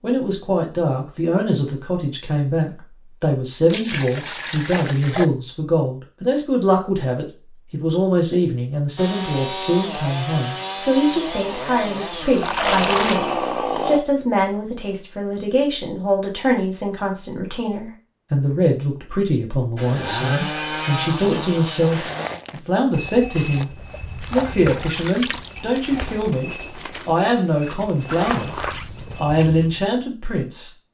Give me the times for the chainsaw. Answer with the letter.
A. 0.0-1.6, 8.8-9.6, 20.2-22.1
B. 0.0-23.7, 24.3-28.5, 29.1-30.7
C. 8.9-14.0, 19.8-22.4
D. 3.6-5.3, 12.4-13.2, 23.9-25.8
C.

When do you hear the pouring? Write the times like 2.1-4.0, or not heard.
3.6-5.3, 12.4-13.2, 23.9-25.8.